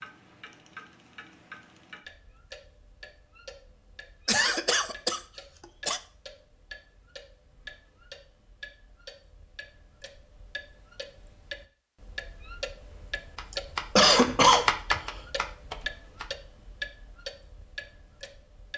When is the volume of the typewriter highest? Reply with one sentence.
The loudest moment of the typewriter is at 15 seconds.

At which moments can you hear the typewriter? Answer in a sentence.
You can hear the typewriter from 13.3 to 16.2 s.